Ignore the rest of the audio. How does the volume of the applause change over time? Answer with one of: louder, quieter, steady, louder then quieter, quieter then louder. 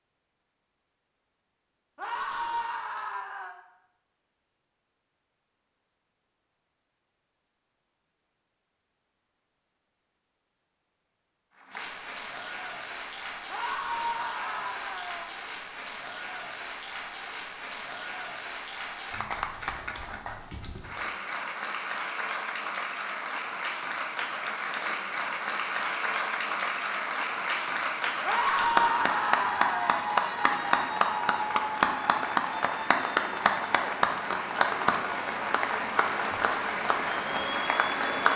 louder.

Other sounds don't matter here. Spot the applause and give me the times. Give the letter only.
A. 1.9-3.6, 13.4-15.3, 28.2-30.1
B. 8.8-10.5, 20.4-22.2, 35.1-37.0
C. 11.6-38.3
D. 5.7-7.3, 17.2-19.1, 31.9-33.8
C.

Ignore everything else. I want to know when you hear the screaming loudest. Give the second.
29 s.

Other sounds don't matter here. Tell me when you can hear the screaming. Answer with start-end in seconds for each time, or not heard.
1.9-3.6, 13.4-15.3, 28.2-30.1.